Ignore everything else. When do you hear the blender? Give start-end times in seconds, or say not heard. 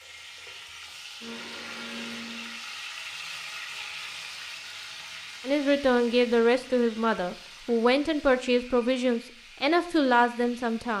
0.0-2.6.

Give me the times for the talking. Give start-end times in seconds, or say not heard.
5.5-10.9.